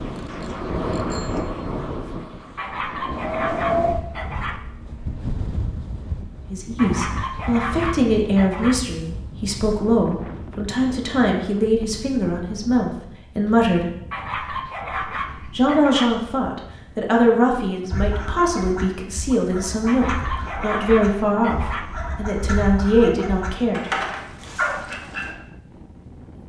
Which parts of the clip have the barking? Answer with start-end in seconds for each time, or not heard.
2.5-4.6, 6.8-8.8, 14.1-16.1, 19.9-21.9.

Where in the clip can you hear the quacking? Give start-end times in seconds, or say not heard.
17.9-25.4.